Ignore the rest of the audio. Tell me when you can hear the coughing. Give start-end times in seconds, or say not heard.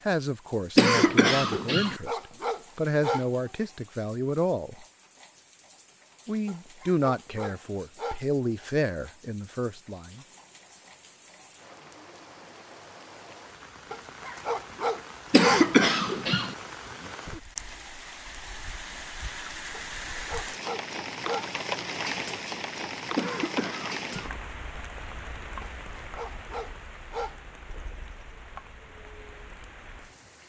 0.8-1.9, 15.3-16.6, 23.1-24.4.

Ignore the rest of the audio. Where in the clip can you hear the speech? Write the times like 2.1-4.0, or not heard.
0.1-4.8, 6.2-10.2.